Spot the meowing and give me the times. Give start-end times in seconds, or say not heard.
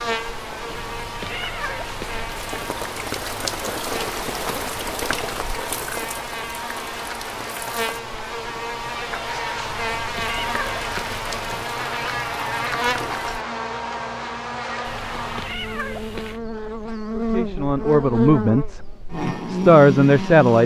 0.7-2.7, 9.6-11.7, 14.8-16.4.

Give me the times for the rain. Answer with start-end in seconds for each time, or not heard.
0.0-13.4.